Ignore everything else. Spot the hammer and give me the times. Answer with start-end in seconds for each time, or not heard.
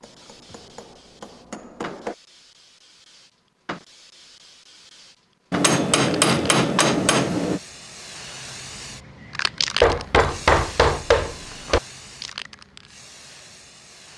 0.0-2.1, 5.5-7.6, 9.8-11.8.